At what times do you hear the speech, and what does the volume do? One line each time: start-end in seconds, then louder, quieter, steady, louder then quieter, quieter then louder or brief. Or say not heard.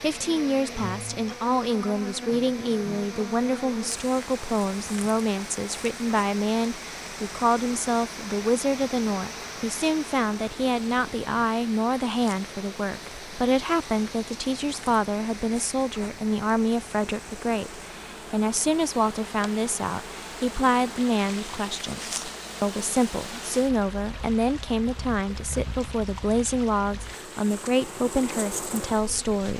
0.0-29.5 steady.